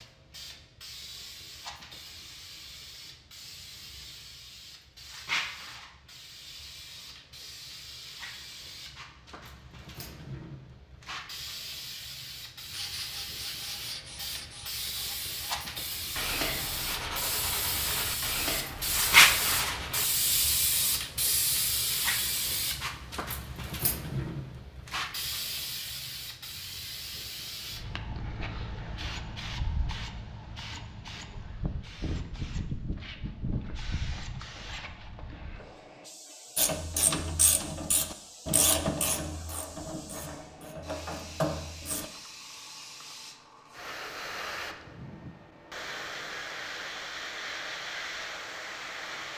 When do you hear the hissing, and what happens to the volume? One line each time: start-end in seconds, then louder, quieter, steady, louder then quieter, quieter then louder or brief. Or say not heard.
0.0-49.3 louder then quieter.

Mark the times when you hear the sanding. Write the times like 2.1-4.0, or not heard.
12.7-20.1.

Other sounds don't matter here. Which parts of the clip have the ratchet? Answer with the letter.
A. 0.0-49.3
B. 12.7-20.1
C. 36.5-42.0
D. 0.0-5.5
C.